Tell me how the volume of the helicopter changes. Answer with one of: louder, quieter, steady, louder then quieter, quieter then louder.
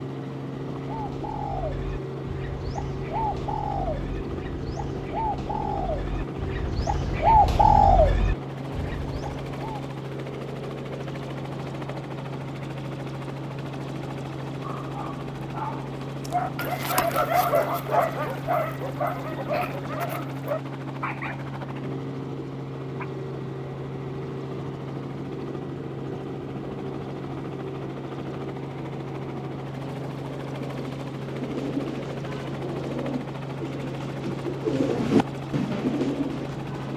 steady.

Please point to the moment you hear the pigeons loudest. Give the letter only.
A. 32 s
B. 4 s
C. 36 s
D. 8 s
D.